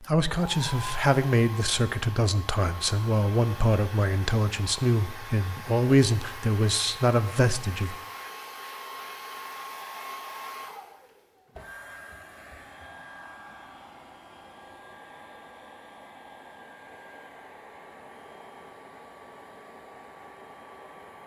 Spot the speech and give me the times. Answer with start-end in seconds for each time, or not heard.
0.0-8.0.